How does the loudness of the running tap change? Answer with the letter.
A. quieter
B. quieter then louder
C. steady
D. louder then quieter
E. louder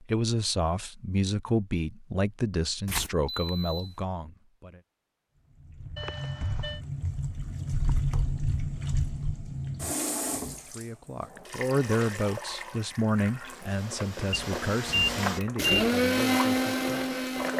B.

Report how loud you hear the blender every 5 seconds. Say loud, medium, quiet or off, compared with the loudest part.
off, off, quiet, loud.